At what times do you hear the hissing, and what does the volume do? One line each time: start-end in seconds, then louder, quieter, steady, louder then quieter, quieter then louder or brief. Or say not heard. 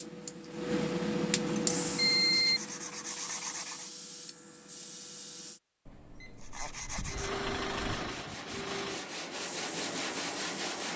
0.0-5.6 quieter
9.3-10.9 brief.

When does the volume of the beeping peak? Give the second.
2 s.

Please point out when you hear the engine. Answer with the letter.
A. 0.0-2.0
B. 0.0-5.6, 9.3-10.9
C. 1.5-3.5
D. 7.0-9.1
D.